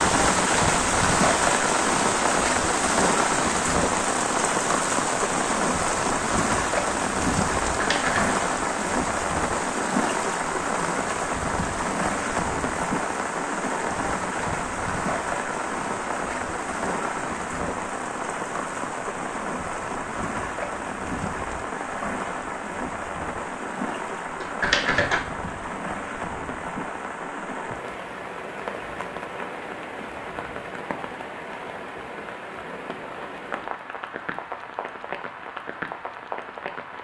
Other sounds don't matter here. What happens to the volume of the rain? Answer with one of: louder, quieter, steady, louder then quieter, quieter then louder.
quieter.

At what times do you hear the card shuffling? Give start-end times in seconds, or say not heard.
7.6-8.3, 24.4-25.2.